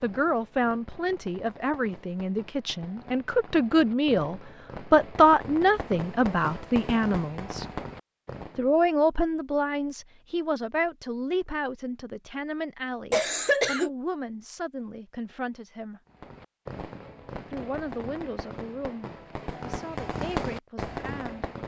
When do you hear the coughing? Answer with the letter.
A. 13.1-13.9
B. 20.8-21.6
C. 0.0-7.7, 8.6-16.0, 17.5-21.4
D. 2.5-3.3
A.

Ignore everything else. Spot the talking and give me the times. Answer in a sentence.
You can hear the talking from 0.0 to 7.7 s, from 8.6 to 16.0 s and from 17.5 to 21.4 s.